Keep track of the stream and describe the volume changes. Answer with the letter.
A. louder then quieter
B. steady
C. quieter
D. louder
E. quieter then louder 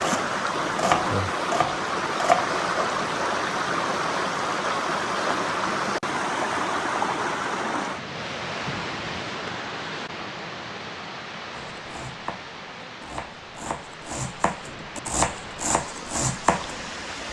C.